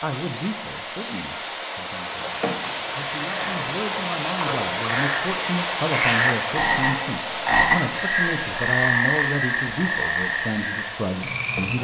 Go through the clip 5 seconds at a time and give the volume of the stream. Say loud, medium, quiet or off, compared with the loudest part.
loud, loud, medium.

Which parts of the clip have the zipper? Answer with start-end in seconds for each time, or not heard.
not heard.